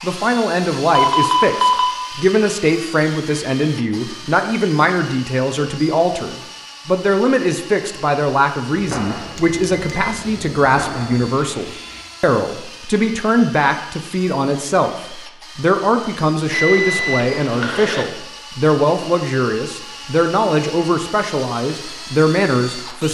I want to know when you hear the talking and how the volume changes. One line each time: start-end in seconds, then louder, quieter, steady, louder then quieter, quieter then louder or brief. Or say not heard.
0.0-23.0 steady.